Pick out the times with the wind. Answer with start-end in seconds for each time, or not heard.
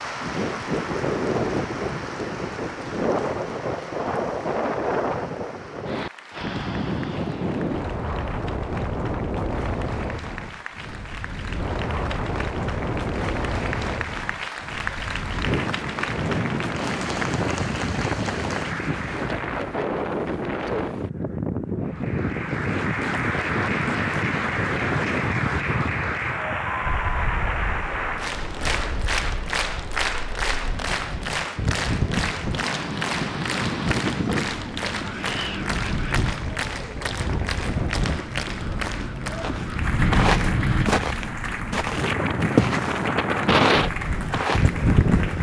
0.0-45.3.